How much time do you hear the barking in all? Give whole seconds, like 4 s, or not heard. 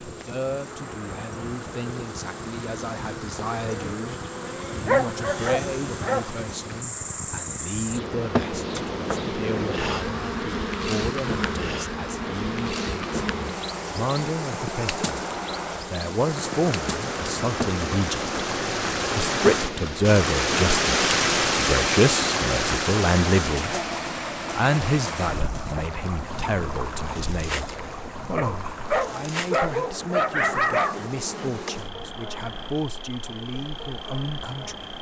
4 s.